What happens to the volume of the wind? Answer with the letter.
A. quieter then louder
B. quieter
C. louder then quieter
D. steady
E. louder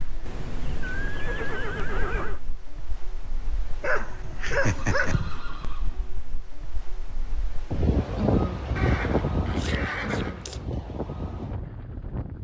C.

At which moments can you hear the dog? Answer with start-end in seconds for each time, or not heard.
3.8-5.4.